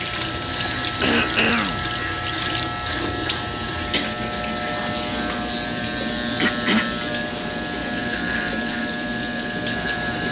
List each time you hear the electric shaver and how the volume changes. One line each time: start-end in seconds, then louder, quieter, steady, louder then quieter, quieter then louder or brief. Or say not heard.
0.0-10.2 steady.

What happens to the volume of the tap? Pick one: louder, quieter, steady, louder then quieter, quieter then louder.
steady.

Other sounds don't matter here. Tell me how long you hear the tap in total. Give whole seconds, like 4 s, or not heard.
10 s.